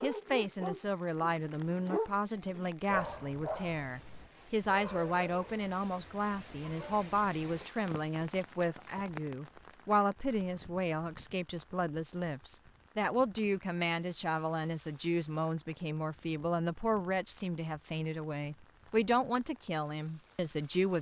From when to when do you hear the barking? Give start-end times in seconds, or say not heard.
0.0-7.8.